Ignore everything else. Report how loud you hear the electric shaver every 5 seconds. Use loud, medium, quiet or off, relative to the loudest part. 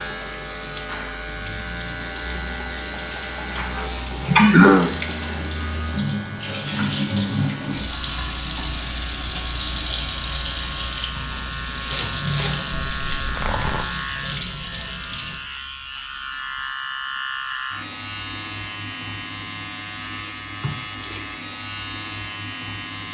loud, medium, loud, loud, loud.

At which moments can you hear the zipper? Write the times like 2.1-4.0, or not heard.
12.7-13.9.